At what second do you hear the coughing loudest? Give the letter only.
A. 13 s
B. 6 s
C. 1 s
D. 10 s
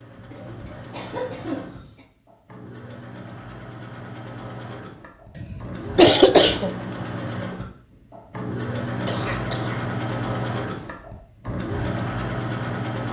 B.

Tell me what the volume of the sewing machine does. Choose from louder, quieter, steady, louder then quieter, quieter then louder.
louder.